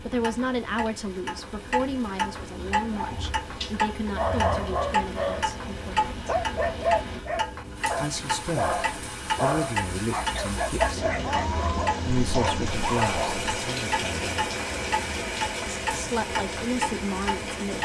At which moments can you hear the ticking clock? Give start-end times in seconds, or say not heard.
0.0-17.8.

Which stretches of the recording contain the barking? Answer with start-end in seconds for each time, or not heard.
2.9-13.4.